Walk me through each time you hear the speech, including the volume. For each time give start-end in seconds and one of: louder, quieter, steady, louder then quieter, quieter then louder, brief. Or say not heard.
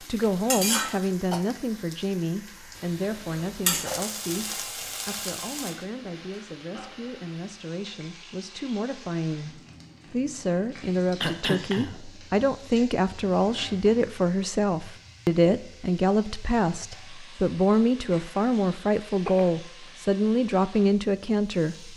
0.1-21.9 quieter then louder.